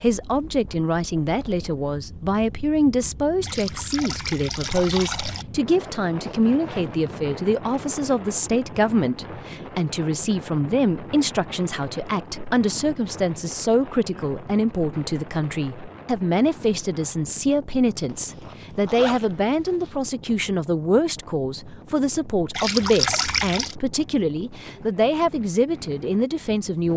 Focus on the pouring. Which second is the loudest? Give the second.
23 s.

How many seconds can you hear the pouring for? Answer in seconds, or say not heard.
3 s.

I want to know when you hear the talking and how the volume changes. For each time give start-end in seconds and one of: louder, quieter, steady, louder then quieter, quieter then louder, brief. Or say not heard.
0.0-26.9 steady.